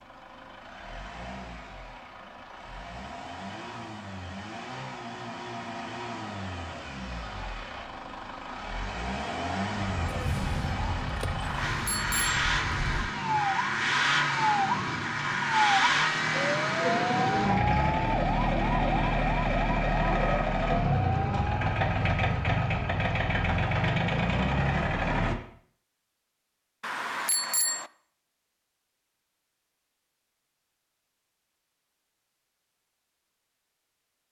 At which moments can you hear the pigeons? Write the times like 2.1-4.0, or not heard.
not heard.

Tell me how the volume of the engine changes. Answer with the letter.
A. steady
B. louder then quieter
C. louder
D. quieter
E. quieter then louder
C.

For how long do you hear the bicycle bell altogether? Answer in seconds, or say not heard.
2 s.